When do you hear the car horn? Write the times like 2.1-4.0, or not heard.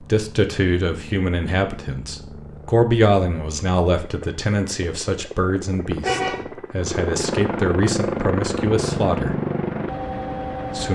6.0-6.5.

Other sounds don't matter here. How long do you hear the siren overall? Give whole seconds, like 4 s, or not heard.
not heard.